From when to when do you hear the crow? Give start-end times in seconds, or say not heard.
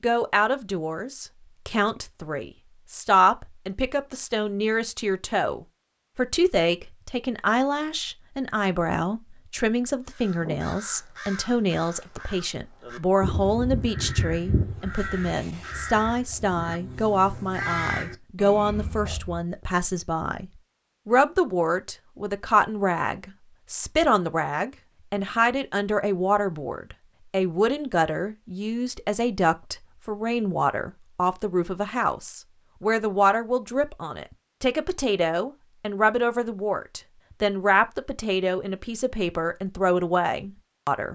10.1-19.4.